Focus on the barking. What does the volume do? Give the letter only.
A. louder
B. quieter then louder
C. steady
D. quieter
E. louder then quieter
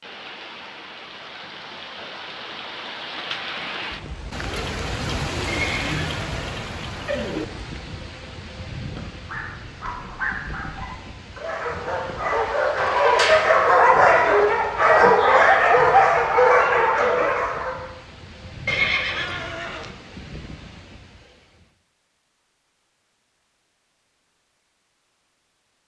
A.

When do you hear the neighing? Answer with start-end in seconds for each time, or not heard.
5.5-6.7, 15.0-15.7, 18.6-19.9.